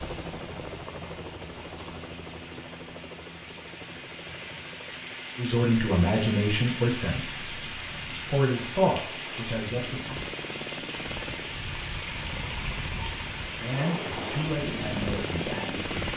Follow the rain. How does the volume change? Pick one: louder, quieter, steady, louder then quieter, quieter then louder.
louder.